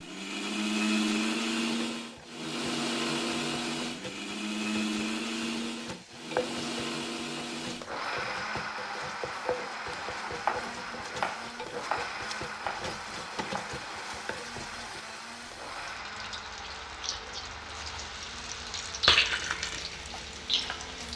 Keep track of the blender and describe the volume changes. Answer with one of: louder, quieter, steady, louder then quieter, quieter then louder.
quieter.